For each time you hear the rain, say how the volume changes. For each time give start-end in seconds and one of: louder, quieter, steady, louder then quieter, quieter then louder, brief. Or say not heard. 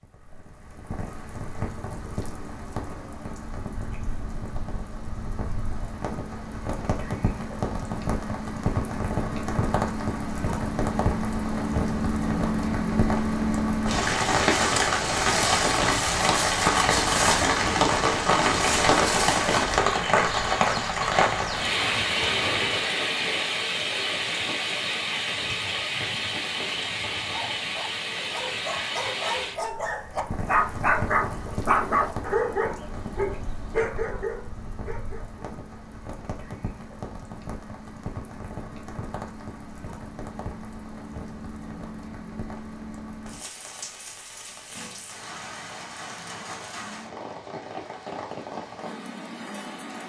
0.0-50.0 louder then quieter.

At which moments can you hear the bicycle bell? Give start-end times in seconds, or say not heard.
not heard.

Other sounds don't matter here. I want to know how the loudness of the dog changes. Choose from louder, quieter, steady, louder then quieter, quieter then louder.
louder then quieter.